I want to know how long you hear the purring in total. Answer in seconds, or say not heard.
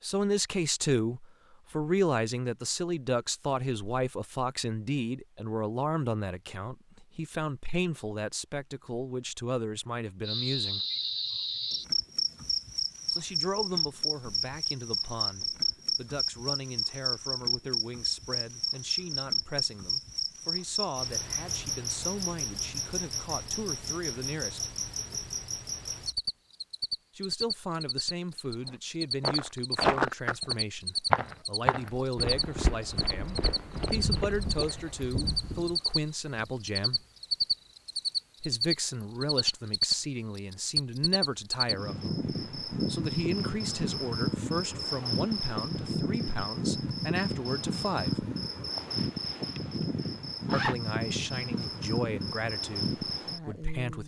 not heard.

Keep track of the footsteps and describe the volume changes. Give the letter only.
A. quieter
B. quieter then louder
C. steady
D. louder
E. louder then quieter
A.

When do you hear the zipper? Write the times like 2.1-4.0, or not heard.
48.8-50.8.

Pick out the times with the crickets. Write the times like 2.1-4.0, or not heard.
10.2-54.0.